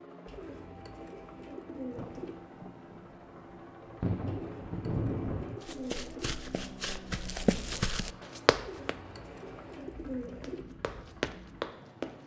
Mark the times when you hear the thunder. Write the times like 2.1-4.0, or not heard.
1.9-5.6.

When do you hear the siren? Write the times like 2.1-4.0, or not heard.
not heard.